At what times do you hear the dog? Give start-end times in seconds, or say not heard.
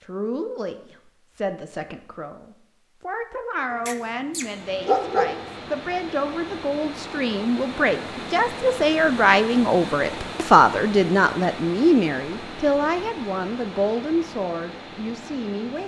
3.7-5.5.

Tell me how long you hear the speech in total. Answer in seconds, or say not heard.
16 s.